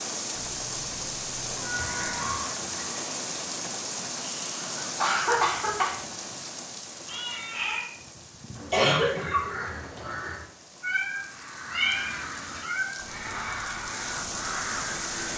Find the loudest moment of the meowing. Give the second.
12 s.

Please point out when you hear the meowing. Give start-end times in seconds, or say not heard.
0.3-2.4, 7.0-7.8, 10.8-13.0.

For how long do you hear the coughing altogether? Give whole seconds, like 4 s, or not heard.
2 s.